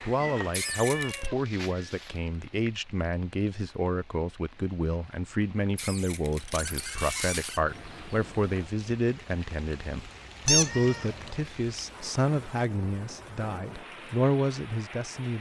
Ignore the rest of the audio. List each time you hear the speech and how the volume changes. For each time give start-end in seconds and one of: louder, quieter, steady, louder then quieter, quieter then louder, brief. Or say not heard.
0.0-15.3 steady.